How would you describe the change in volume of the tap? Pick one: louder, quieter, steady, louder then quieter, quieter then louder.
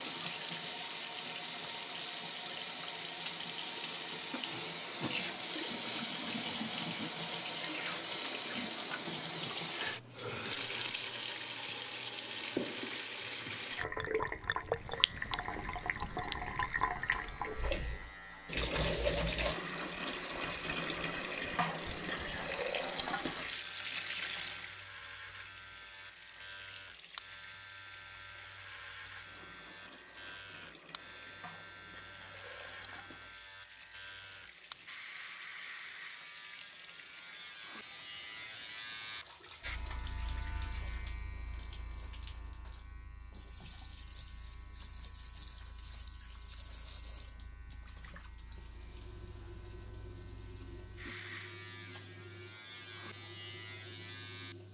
quieter.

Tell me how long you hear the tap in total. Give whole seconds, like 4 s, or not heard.
55 s.